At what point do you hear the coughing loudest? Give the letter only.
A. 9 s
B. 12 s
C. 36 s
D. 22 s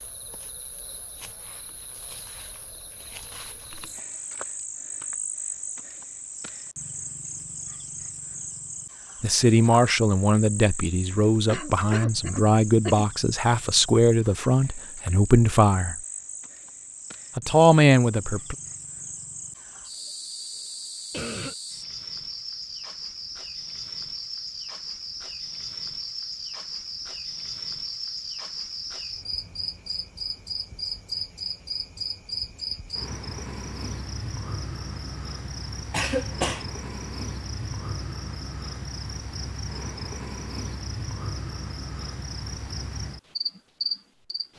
C.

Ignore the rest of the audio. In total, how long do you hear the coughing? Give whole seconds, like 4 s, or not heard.
3 s.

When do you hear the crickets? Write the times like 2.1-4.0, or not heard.
0.0-44.5.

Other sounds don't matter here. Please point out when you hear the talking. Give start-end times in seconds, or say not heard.
9.2-15.9, 17.4-18.6.